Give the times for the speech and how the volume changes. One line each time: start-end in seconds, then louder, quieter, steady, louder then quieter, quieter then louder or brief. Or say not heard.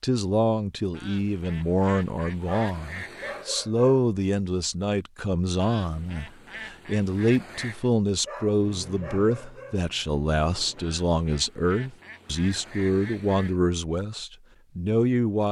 0.0-15.4 steady.